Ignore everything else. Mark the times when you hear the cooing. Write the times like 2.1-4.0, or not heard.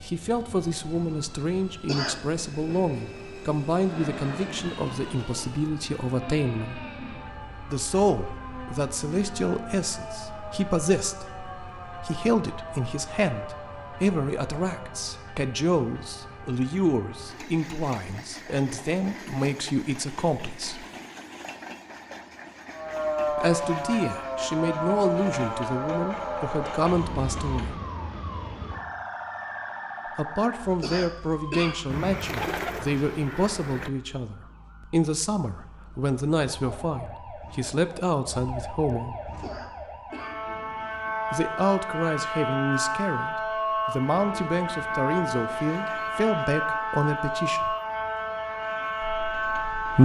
31.9-33.9.